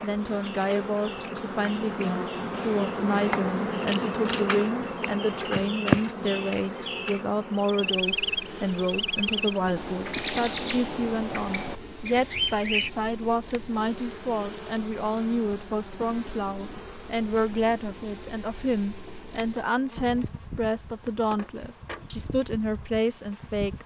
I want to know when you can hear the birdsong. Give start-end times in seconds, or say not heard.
0.0-12.9.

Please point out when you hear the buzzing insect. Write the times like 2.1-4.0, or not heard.
0.0-23.8.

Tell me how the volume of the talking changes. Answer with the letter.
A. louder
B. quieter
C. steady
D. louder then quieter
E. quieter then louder
C.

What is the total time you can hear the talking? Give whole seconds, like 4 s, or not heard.
24 s.